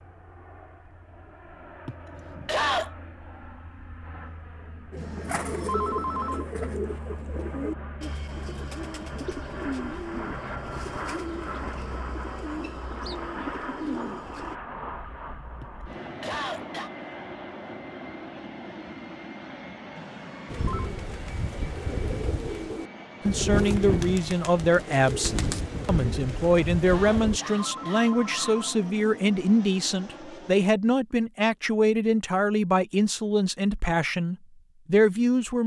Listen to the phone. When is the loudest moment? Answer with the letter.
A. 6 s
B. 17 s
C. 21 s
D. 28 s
A.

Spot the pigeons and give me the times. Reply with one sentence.
The pigeons can be heard from 4.9 to 14.6 s and from 20.4 to 27.4 s.